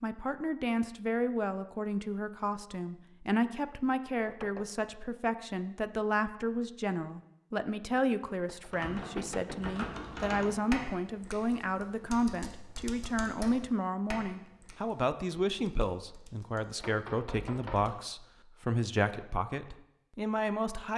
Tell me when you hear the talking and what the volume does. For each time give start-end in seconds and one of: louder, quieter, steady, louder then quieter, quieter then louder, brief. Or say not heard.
0.0-20.9 steady.